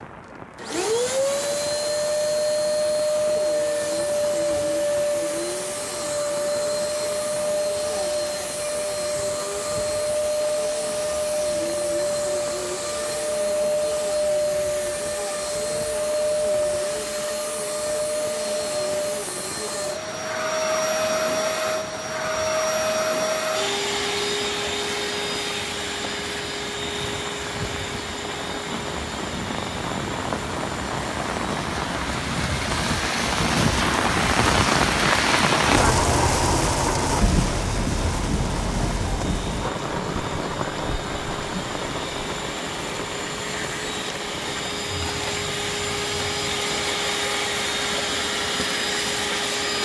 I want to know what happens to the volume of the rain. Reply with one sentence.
The volume of the rain goes up, then down.